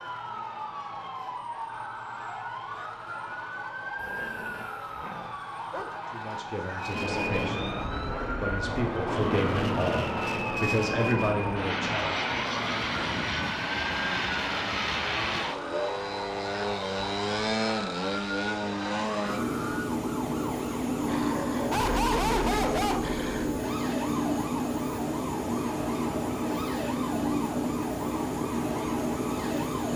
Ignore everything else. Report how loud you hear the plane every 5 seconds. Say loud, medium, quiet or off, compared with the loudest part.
off, loud, loud, loud, loud, loud.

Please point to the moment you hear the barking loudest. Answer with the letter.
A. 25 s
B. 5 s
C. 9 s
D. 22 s
D.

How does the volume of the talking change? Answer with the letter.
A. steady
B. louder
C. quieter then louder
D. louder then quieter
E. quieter
B.